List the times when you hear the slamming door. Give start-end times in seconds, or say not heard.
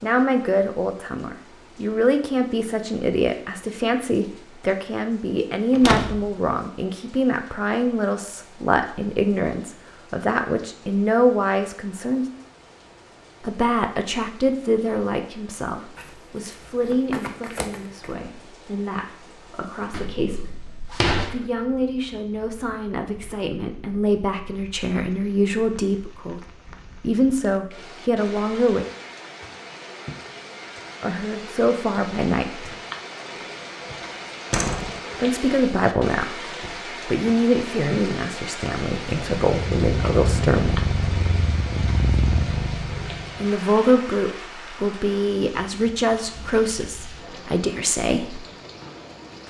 5.7-6.3, 19.9-21.4, 34.5-35.0.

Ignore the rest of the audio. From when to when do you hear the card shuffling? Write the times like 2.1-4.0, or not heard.
15.9-18.1.